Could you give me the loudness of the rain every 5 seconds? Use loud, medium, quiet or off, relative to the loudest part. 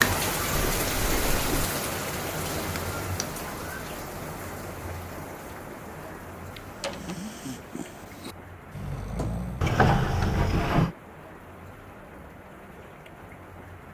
loud, quiet, quiet.